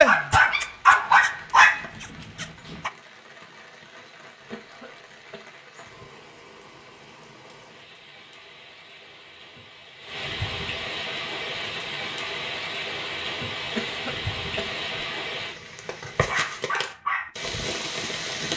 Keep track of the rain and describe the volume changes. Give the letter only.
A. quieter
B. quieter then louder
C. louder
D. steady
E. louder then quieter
C.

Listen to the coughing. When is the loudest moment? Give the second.
14 s.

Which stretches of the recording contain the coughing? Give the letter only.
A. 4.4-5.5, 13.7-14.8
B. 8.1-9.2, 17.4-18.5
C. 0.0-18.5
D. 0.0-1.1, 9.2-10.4
A.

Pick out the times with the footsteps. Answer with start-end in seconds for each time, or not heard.
not heard.